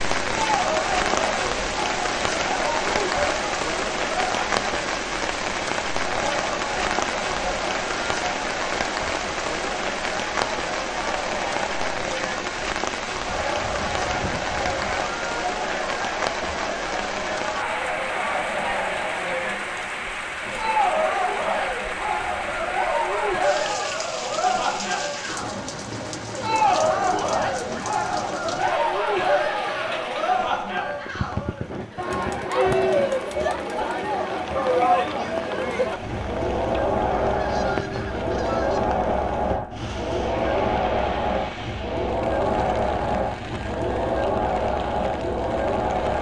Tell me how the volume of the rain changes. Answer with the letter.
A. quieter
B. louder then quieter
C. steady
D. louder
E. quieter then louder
A.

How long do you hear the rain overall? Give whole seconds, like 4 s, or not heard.
46 s.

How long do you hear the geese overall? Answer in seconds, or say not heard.
3 s.